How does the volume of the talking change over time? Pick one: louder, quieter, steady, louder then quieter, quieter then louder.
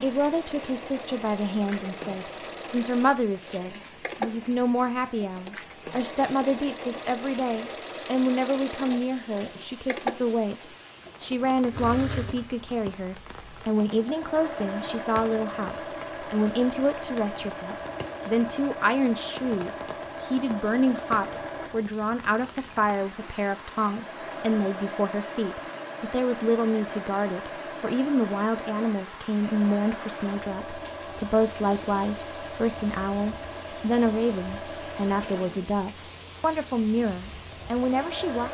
steady.